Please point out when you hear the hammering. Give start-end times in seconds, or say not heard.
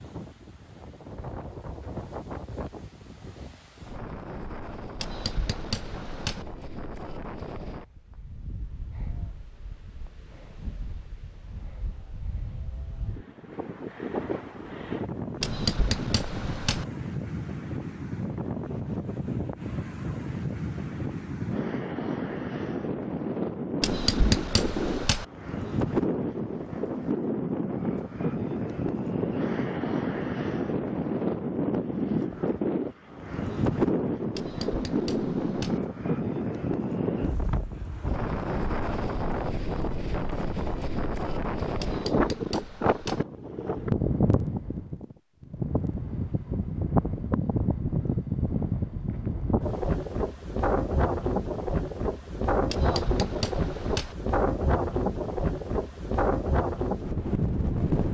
5.0-6.5, 15.4-16.9, 23.8-25.2, 34.4-35.8, 41.8-43.2, 52.7-54.1.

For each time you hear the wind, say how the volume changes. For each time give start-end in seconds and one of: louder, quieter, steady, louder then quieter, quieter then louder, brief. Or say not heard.
0.0-58.0 louder.